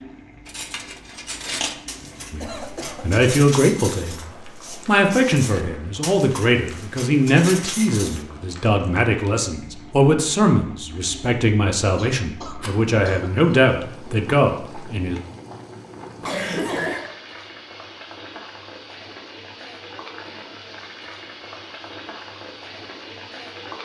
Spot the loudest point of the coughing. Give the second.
17 s.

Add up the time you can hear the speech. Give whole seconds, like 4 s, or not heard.
12 s.